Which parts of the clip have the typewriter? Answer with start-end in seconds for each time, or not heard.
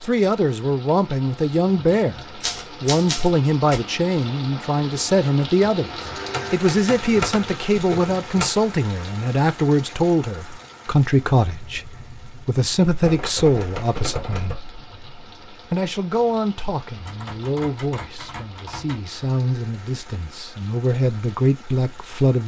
2.2-3.8, 6.2-8.5, 13.0-14.6, 17.1-19.0.